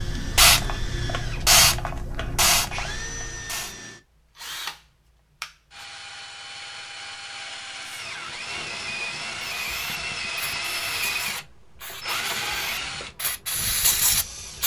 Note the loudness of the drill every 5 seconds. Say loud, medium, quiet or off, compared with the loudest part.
medium, loud, loud.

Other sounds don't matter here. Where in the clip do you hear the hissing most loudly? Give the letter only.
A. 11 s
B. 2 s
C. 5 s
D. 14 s
B.